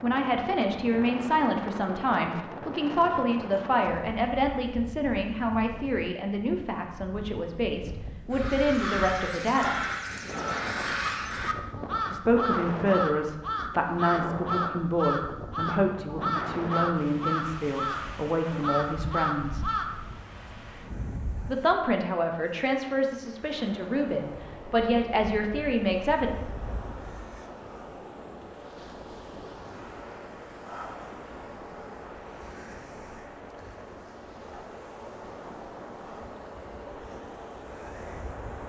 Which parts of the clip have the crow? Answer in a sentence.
You can hear the crow from 8.3 to 19.9 s.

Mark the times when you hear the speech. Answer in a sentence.
You can hear the speech from 0.0 to 9.8 s, from 12.1 to 19.6 s and from 21.4 to 26.3 s.